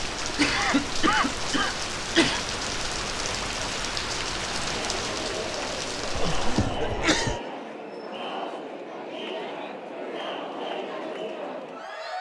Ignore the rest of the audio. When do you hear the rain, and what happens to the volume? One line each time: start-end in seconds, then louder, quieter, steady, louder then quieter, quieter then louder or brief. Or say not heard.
0.0-6.7 steady.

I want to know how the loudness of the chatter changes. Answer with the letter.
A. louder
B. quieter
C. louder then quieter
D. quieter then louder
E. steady
E.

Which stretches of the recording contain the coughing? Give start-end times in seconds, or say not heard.
0.2-2.5, 6.2-7.4.